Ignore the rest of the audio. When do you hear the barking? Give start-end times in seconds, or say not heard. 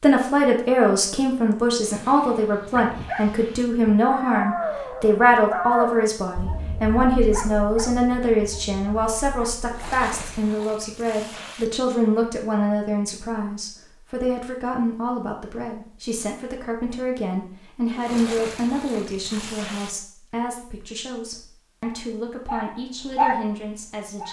2.6-10.7, 21.8-24.2.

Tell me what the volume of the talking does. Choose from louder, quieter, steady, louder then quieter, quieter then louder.
quieter.